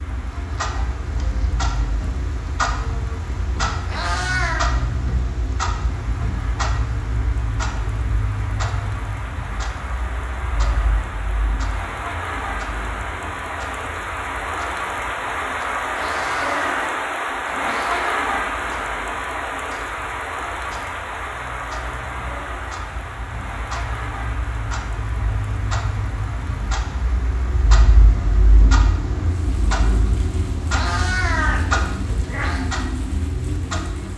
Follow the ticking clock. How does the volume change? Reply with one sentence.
The volume of the ticking clock goes down, then up.